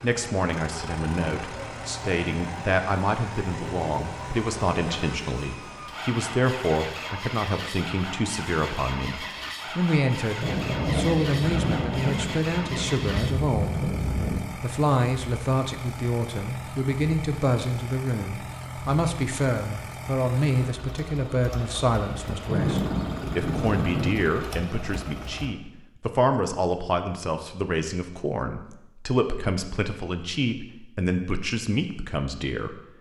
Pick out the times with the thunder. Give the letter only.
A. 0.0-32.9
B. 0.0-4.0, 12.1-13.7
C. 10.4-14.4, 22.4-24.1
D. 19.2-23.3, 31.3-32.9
C.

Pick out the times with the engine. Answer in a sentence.
The engine can be heard from 0.0 to 25.6 s.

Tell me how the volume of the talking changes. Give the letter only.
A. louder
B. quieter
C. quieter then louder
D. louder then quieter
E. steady
E.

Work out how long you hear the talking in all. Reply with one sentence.
You can hear the talking for 33 seconds altogether.